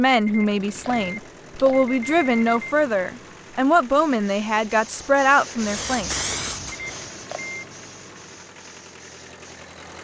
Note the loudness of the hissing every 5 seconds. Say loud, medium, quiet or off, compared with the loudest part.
off, loud.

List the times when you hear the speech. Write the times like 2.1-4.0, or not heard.
0.0-6.1.